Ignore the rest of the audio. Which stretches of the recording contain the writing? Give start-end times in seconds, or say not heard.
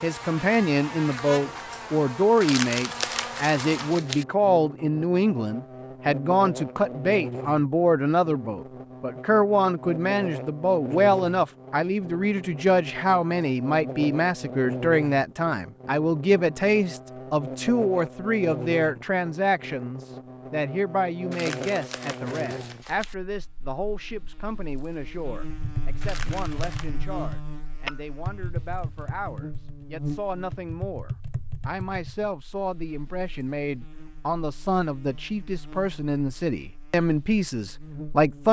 not heard.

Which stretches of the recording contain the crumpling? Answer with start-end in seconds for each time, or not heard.
2.4-4.2, 21.3-23.1, 26.0-26.9.